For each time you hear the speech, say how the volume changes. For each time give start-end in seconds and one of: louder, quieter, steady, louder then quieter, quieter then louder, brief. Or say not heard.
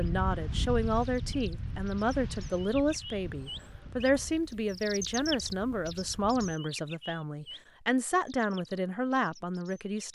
0.0-10.0 steady.